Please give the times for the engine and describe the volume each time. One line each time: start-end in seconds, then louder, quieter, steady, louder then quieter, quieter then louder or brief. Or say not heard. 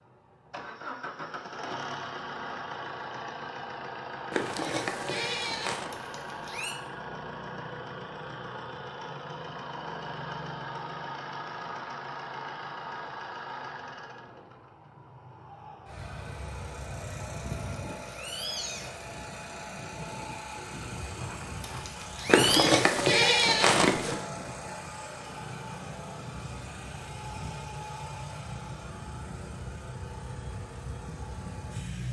0.0-32.0 steady.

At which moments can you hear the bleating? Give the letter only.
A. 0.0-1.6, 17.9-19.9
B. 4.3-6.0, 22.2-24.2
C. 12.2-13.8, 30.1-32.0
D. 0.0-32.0
B.